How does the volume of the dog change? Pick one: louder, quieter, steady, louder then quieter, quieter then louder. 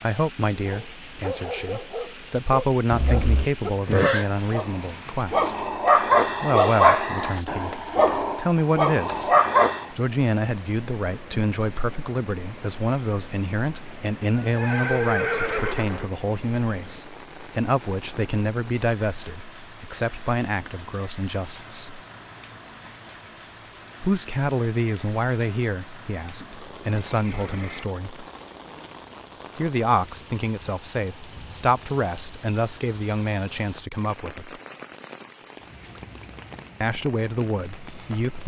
louder.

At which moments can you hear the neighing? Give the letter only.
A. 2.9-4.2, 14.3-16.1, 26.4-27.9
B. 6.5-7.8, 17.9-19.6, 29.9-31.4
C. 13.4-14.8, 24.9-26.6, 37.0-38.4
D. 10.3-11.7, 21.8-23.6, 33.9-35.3
A.